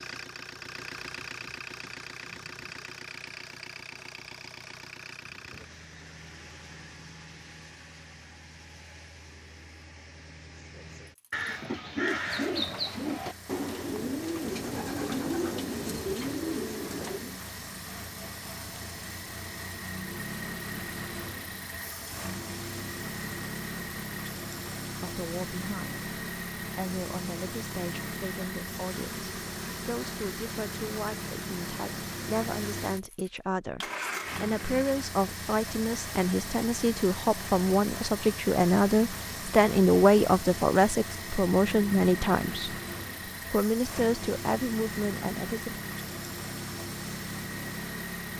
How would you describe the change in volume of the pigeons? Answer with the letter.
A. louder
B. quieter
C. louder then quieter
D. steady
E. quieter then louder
D.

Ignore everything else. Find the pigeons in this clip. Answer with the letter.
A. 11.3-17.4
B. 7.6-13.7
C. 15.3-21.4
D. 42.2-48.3
A.